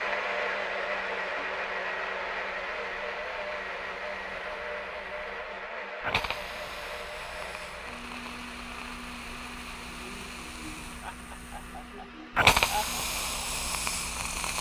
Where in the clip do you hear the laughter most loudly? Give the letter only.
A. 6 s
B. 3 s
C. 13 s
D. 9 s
C.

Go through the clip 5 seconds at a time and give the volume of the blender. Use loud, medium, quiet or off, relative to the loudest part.
loud, medium, quiet.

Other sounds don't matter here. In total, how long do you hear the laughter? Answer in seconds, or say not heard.
2 s.